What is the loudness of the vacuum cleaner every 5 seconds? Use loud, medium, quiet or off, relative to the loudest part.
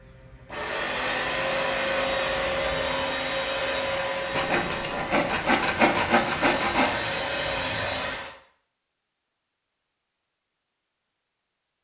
loud, loud, off.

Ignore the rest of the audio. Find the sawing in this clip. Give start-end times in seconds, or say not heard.
4.3-7.0.